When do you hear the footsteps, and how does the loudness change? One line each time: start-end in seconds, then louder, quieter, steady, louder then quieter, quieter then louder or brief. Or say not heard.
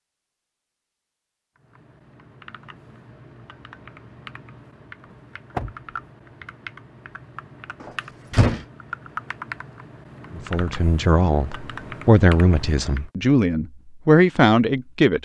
not heard.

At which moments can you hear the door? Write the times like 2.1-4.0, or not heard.
5.1-5.8, 7.8-8.7.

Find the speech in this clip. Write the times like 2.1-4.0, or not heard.
10.3-15.2.